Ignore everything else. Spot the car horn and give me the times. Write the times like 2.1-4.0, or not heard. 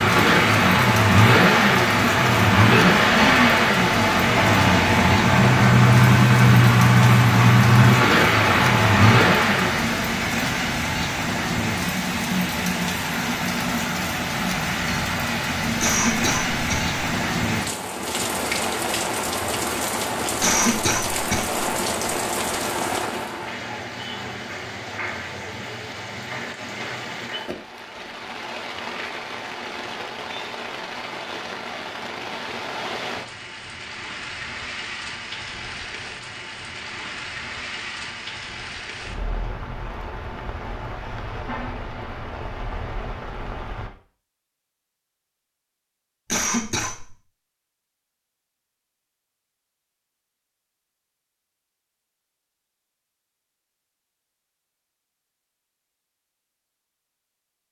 not heard.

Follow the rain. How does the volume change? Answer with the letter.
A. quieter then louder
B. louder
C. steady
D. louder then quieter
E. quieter
E.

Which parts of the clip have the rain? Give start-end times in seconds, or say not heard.
0.0-43.9.